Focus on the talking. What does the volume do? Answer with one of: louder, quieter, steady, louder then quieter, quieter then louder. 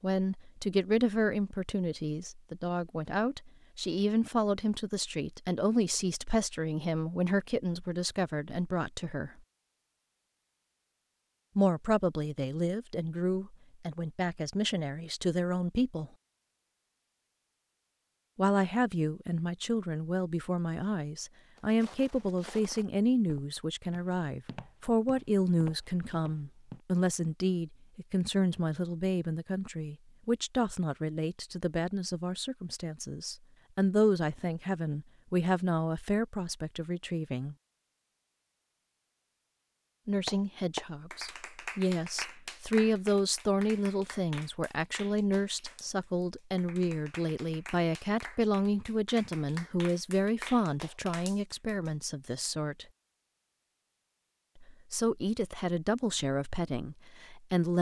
steady.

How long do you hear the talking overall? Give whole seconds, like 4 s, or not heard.
49 s.